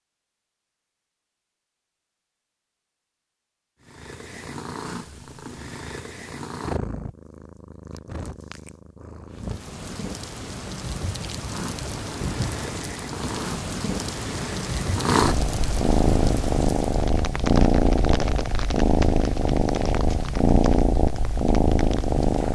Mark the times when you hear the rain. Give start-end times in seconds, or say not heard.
9.3-22.4.